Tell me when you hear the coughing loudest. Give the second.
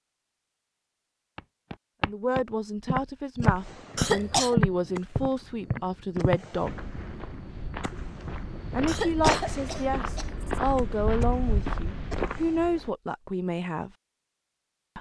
4 s.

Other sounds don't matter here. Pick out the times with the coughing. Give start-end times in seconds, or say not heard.
4.0-4.6, 8.8-10.7.